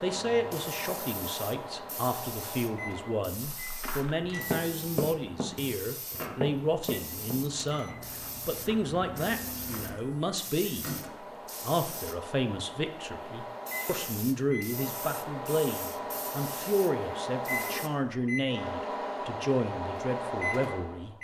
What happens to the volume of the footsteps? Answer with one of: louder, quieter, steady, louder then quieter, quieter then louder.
quieter.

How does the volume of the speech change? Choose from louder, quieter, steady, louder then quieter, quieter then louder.
steady.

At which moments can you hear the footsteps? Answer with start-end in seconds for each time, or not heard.
3.4-10.0.